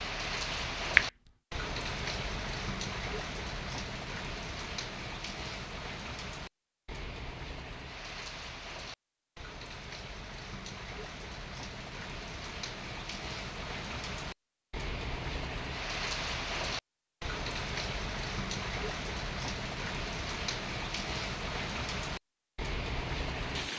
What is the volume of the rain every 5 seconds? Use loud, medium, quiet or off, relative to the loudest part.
loud, medium, medium, loud, loud.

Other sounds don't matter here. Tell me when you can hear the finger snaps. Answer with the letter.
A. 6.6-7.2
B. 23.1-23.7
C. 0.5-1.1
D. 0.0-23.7
C.